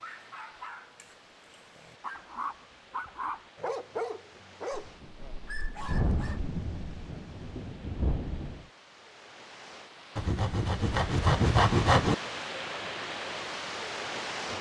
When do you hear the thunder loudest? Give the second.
6 s.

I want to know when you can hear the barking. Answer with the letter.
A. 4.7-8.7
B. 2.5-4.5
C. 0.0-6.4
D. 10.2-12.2
C.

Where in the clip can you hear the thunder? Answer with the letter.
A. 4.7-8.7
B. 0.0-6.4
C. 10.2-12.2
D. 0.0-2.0
A.